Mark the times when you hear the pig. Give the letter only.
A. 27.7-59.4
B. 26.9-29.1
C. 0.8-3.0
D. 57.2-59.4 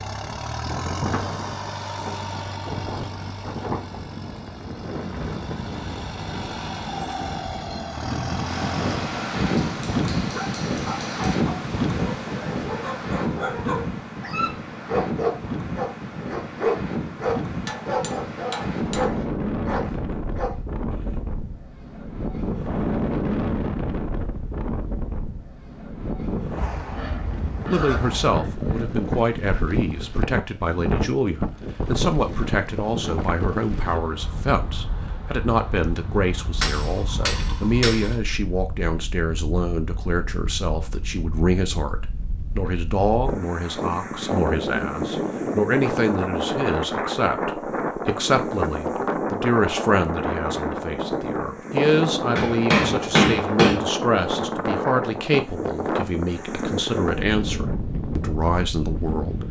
B.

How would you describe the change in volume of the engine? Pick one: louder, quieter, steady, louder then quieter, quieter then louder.
quieter then louder.